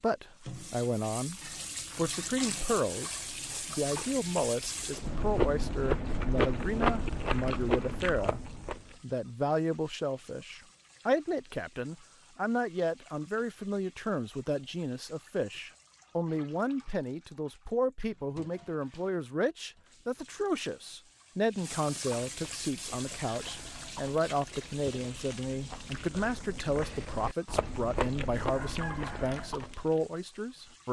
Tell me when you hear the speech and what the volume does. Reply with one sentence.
The speech can be heard from 0.0 to 30.8 s, at a steady volume.